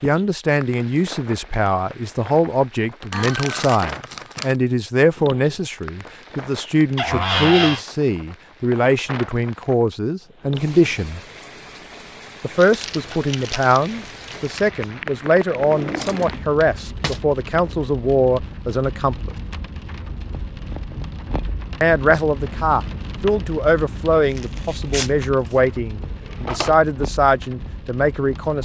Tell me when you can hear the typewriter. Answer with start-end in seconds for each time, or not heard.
not heard.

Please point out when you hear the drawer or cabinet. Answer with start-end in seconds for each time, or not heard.
7.0-7.8, 15.5-17.2, 26.2-26.8.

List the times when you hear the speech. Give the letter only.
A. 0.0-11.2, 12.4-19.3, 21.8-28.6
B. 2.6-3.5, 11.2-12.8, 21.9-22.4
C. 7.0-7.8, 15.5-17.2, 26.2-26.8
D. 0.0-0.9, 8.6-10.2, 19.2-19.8
A.